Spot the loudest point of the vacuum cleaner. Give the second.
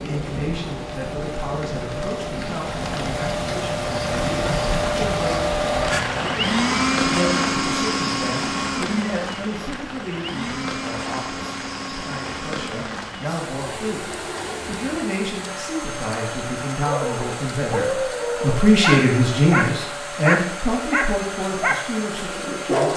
7 s.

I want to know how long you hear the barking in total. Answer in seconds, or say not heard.
6 s.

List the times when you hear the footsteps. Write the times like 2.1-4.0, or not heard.
not heard.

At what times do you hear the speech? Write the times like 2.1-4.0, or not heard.
0.0-22.9.